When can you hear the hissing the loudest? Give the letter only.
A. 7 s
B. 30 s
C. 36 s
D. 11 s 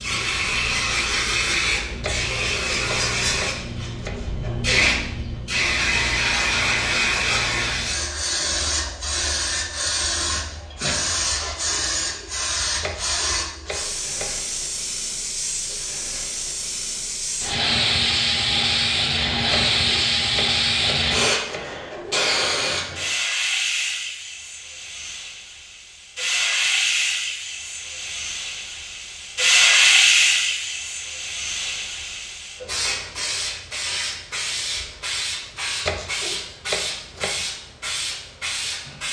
B.